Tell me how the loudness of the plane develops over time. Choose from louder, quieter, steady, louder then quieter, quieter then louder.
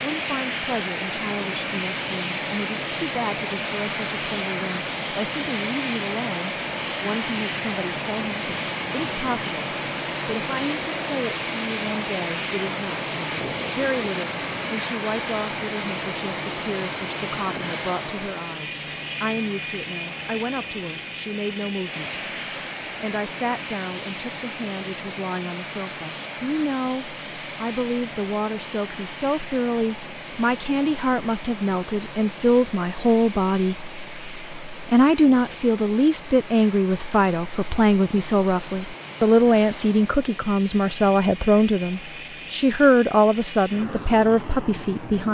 quieter.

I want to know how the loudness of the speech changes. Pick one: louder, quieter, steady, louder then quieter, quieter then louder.
louder.